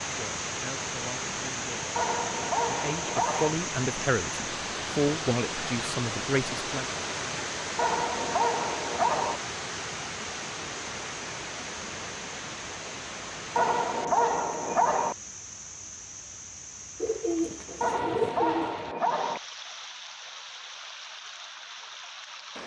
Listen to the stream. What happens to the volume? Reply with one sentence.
The loudness of the stream goes down.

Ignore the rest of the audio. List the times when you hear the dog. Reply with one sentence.
The dog can be heard from 1.9 to 3.5 s, from 7.8 to 9.4 s, from 13.6 to 15.2 s and from 17.8 to 19.4 s.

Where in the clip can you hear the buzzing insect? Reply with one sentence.
You can't hear the buzzing insect here.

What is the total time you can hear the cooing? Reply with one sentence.
You can hear the cooing for 2 seconds altogether.